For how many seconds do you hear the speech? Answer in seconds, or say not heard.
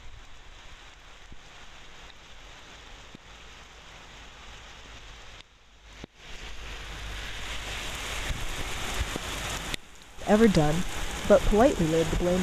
2 s.